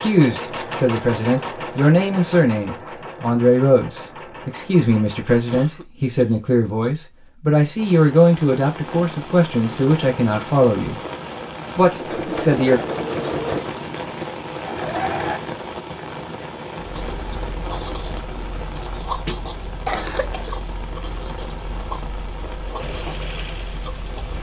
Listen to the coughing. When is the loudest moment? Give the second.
20 s.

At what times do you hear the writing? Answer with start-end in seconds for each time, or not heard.
16.8-24.3.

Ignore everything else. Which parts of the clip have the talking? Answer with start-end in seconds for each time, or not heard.
0.0-11.0, 11.8-12.8.